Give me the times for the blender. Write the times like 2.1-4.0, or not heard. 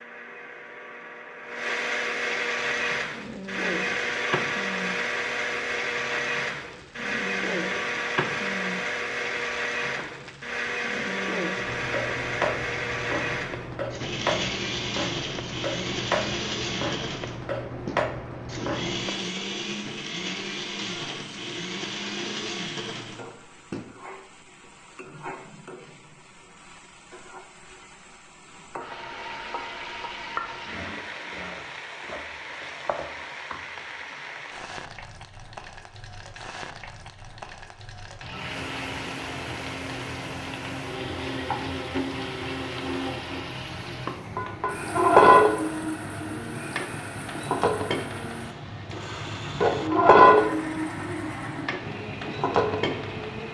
0.0-23.9, 38.3-53.4.